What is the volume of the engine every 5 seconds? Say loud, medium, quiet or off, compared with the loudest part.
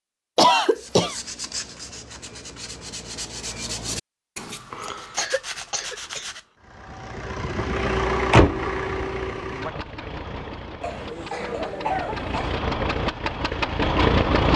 off, loud, loud.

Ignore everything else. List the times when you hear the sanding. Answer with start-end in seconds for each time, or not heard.
0.7-6.5.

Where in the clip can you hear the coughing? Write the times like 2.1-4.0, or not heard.
0.3-1.1, 5.2-6.3, 10.8-12.6.